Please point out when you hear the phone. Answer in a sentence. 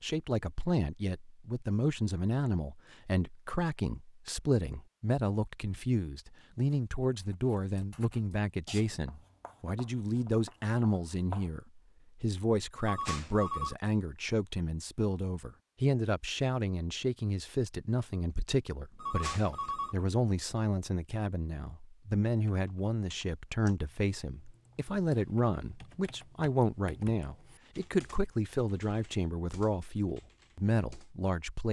You can hear the phone from 12.8 to 13.8 s and from 18.9 to 20.0 s.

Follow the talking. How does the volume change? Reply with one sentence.
The volume of the talking stays about the same.